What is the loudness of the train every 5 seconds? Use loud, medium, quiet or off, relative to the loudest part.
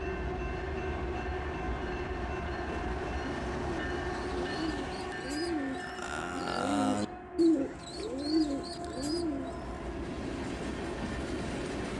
loud, medium, loud.